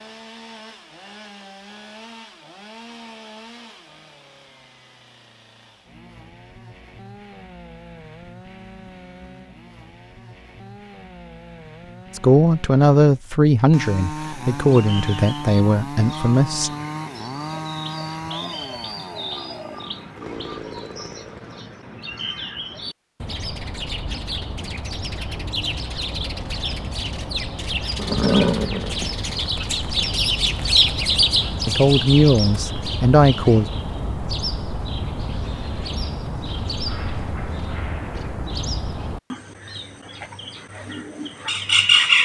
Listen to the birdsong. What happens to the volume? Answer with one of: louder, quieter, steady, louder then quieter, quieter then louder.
louder then quieter.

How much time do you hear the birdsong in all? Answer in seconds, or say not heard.
28 s.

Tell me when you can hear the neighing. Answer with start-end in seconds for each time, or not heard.
27.9-29.2.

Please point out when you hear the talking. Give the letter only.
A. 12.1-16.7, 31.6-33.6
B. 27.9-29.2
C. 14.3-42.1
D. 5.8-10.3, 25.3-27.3
A.